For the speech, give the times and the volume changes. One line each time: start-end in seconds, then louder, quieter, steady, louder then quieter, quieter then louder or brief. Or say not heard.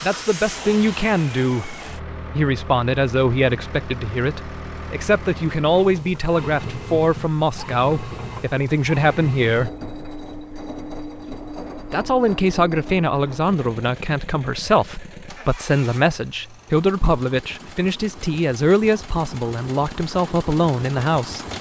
0.0-9.8 steady
11.9-21.4 steady.